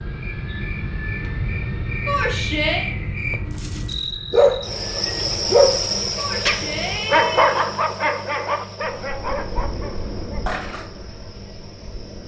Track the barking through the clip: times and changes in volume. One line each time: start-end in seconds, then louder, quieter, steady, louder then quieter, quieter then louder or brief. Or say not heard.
3.5-10.8 quieter.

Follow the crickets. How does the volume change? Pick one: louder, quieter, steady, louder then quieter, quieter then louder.
louder then quieter.